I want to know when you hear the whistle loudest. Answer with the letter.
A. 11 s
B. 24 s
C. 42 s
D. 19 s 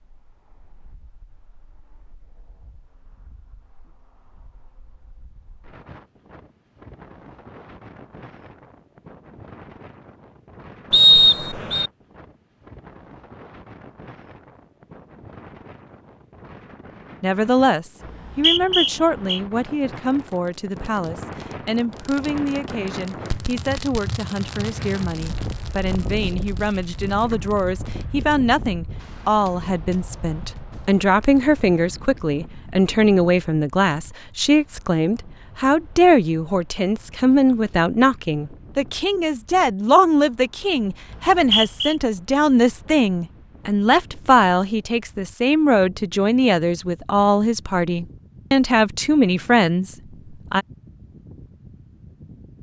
A.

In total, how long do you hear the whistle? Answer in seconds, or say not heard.
3 s.